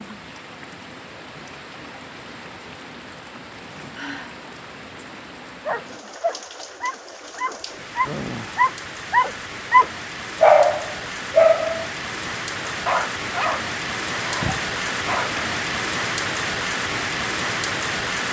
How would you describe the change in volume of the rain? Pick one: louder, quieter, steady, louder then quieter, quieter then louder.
louder.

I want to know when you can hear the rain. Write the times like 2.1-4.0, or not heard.
0.0-18.2.